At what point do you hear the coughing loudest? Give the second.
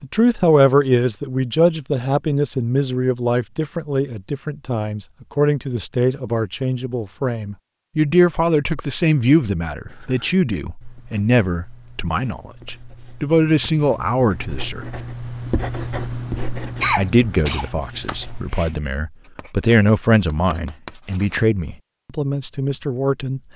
17 s.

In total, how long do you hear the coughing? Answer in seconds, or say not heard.
2 s.